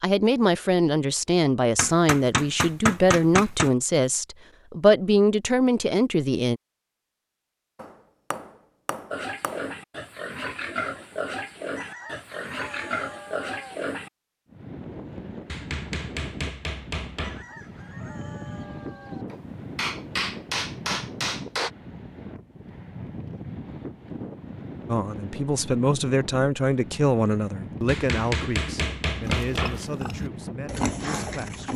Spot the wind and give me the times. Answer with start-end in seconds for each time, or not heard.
14.4-31.7.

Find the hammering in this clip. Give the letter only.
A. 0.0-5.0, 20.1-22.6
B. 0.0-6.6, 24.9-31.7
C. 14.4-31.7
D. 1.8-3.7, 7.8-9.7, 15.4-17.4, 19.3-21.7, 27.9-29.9
D.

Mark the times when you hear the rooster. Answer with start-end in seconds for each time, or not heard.
11.8-13.8, 17.2-19.2.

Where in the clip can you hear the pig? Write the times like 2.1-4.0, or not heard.
9.1-14.1, 29.2-31.7.